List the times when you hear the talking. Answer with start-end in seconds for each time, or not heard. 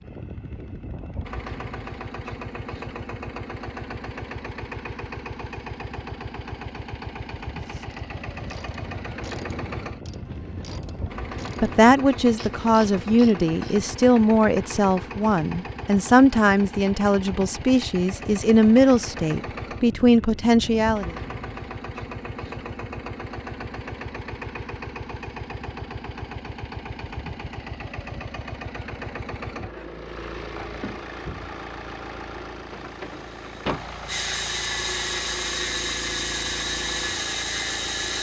11.6-21.1.